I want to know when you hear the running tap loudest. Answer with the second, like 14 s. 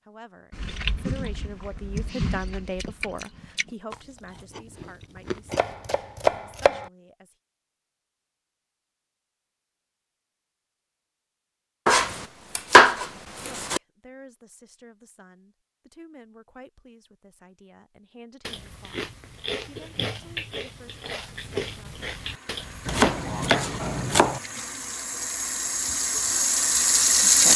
27 s.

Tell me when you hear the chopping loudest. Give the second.
13 s.